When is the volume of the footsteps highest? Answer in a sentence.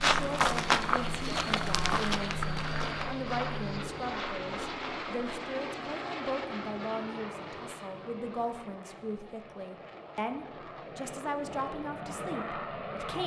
The loudest moment of the footsteps is at 1 second.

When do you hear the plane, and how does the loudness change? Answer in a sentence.
You can hear the plane from 0.0 to 13.2 s, getting quieter then louder.